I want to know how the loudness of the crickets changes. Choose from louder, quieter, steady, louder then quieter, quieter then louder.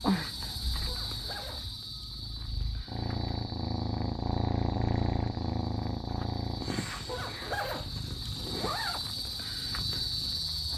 quieter then louder.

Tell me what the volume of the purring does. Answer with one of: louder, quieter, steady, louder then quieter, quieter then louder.
louder then quieter.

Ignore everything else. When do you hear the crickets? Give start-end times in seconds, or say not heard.
0.0-10.7.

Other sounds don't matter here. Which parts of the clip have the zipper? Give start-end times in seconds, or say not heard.
0.8-2.0, 7.0-9.0.